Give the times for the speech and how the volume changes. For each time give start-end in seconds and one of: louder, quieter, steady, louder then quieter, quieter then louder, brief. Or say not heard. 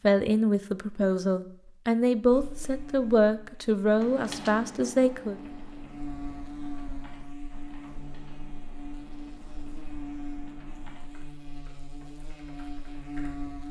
0.0-5.4 steady.